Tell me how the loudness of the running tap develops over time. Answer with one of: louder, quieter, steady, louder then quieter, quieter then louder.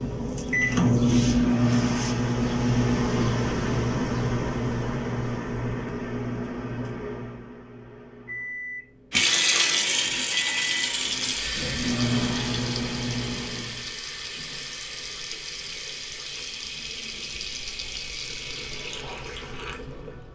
quieter.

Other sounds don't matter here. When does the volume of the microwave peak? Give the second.
1 s.